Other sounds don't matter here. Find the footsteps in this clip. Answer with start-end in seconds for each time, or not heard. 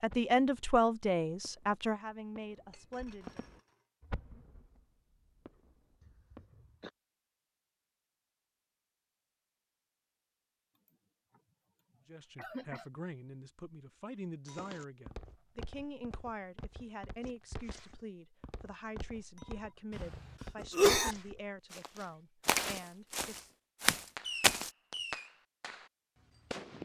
14.4-24.7.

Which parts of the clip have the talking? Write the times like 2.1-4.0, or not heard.
0.0-3.4, 12.1-23.5.